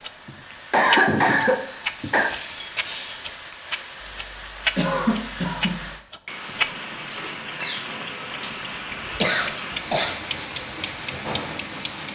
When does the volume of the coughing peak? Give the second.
1 s.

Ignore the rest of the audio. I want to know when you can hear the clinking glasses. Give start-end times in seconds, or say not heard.
2.2-3.3, 7.2-7.8.